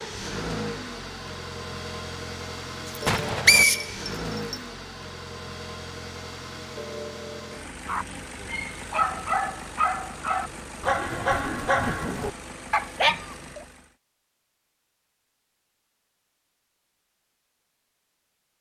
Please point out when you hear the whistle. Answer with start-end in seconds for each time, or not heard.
3.0-4.5.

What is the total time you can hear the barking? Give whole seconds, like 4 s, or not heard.
6 s.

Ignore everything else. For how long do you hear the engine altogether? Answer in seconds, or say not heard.
14 s.